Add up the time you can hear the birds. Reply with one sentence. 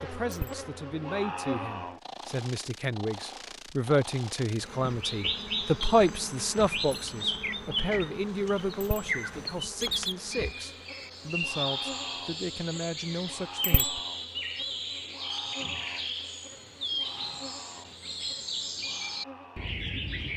You can hear the birds for 16 seconds altogether.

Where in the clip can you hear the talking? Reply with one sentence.
You can hear the talking from 0.0 to 14.0 s.